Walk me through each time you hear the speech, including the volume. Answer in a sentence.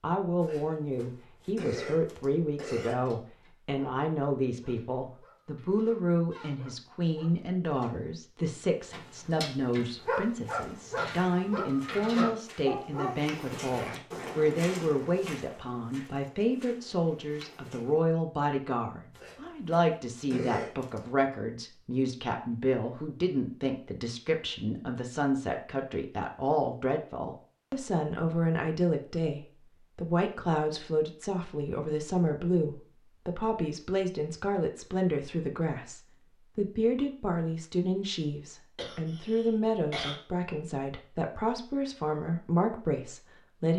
You can hear the speech from 0.0 to 43.7 s, at a steady volume.